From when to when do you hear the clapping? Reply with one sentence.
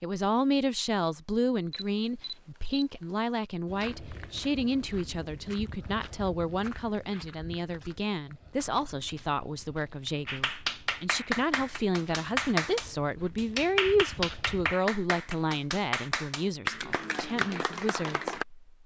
You can hear the clapping from 10.2 to 18.4 s.